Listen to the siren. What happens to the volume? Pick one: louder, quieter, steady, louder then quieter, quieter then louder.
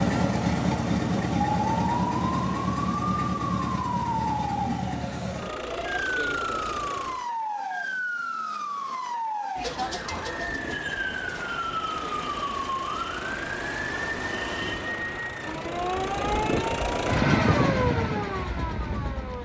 steady.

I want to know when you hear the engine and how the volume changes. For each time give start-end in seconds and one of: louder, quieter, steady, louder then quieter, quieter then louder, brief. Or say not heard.
0.0-7.2 quieter
10.0-19.4 louder.